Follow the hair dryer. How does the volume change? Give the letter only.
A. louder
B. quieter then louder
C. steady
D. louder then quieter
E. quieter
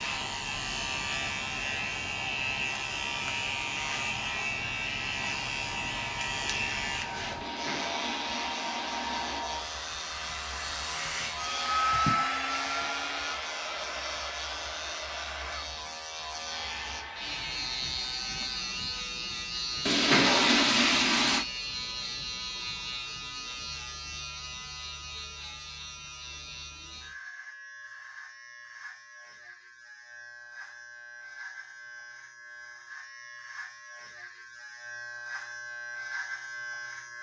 D.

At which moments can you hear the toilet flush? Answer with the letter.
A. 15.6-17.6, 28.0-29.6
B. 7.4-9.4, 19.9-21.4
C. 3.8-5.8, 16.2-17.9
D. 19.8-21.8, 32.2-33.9
B.